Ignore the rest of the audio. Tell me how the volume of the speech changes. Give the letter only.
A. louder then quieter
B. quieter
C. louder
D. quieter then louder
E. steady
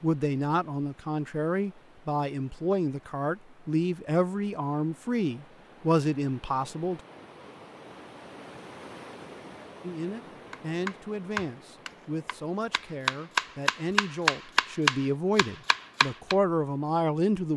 D.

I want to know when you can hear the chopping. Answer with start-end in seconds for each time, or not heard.
10.5-16.4.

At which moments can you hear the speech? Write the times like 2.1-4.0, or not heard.
0.0-7.0, 9.8-17.5.